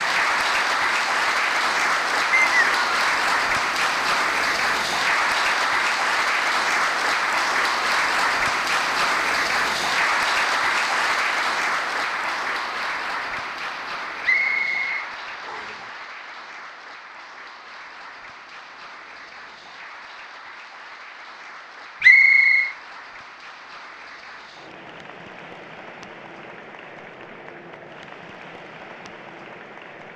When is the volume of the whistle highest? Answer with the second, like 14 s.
22 s.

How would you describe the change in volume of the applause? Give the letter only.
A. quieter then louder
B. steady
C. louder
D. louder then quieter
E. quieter
E.